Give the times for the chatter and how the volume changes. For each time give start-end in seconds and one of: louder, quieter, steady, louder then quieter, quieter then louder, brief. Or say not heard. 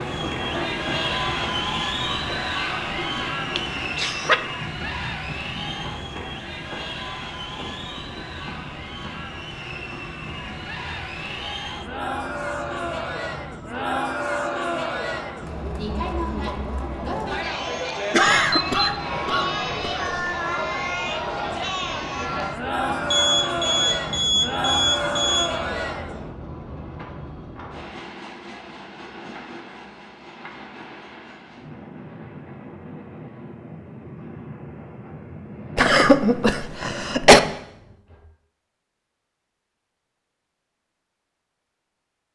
0.0-26.3 quieter then louder.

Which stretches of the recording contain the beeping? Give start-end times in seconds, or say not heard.
18.2-19.2, 23.1-25.5.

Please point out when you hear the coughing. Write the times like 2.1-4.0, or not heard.
3.5-4.4, 18.1-20.0, 35.8-37.4.